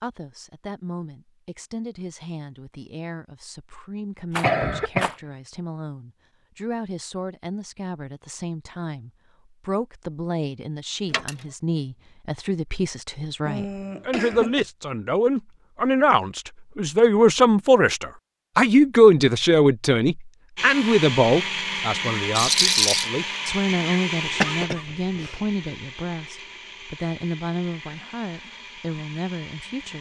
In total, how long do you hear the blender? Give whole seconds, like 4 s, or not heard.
9 s.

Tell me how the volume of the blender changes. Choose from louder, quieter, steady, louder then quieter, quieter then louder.
quieter.